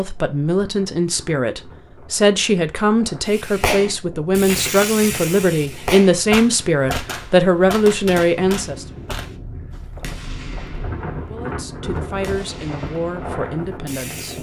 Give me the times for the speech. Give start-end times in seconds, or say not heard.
0.0-8.8, 11.2-14.3.